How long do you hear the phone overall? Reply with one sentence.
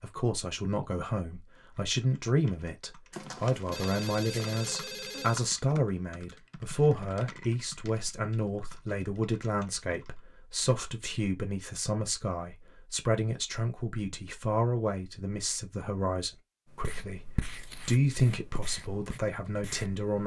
The phone can be heard for 2 seconds in total.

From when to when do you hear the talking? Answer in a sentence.
You can hear the talking from 0.0 to 20.2 s.